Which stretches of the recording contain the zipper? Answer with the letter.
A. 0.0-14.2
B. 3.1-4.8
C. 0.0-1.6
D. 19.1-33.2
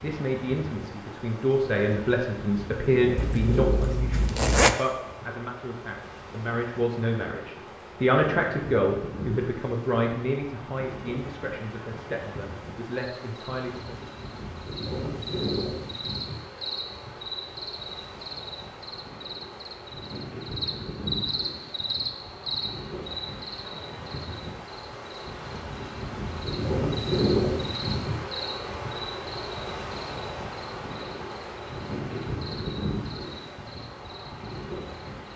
B.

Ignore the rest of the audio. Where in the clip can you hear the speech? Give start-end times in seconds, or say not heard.
0.0-14.2.